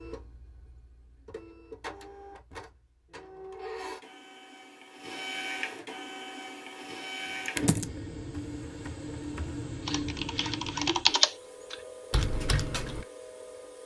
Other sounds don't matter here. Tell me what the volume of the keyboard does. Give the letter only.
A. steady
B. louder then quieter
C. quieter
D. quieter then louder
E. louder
B.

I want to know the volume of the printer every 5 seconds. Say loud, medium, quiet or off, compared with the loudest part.
medium, loud, loud.